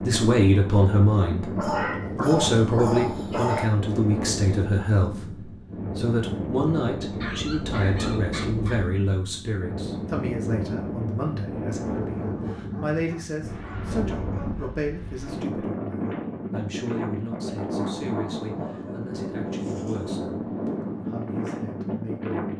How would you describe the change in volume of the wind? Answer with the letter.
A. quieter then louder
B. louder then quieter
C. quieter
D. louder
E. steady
E.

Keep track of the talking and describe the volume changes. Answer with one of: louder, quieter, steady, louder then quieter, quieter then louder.
quieter.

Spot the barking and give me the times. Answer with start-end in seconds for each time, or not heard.
1.6-3.8, 7.1-8.9, 11.8-14.8, 18.6-20.2.